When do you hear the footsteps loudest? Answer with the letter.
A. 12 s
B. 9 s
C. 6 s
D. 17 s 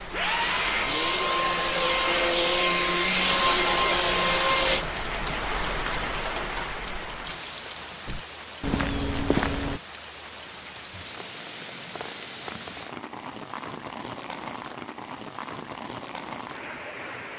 B.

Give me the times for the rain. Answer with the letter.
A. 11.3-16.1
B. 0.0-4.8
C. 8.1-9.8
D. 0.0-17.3
D.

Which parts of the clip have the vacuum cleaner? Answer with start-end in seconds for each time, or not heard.
0.0-4.8.